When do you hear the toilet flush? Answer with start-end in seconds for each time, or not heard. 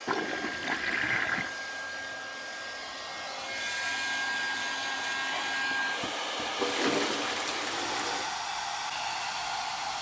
0.1-1.6, 6.5-8.3.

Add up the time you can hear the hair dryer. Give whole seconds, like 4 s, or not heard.
10 s.